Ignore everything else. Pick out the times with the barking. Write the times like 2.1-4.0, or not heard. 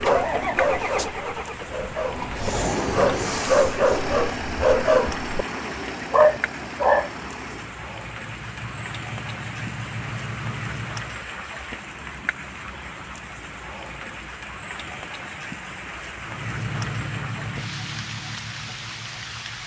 0.0-7.1.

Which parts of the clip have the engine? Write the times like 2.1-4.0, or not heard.
0.0-11.2, 16.2-19.6.